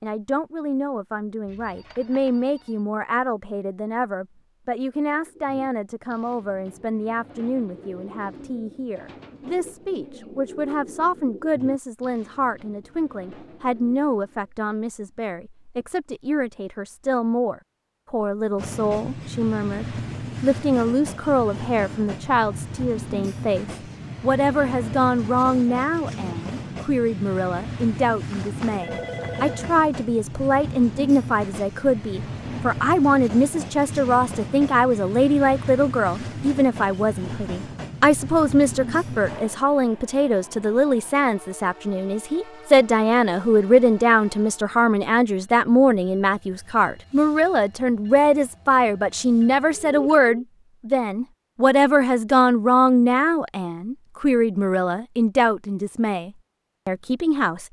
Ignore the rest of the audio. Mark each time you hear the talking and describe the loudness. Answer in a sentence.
You can hear the talking from 0.0 to 57.6 s, getting louder.